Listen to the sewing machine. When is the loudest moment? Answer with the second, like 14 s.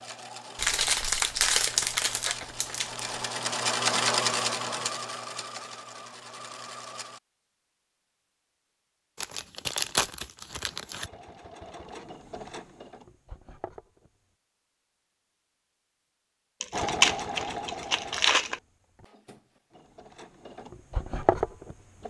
4 s.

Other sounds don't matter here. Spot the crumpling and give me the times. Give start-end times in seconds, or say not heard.
0.6-3.1, 9.2-11.1, 16.6-18.6.